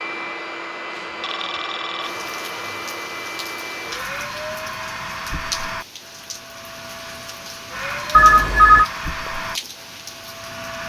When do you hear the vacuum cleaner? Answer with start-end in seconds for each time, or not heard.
0.0-10.8.